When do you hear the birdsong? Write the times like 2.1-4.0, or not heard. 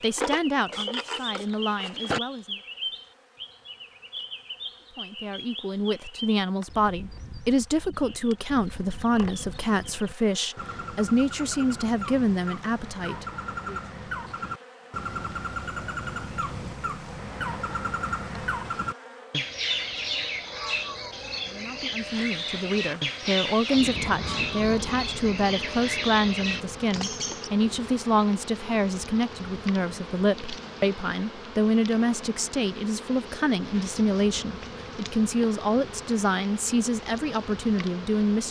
0.0-27.5.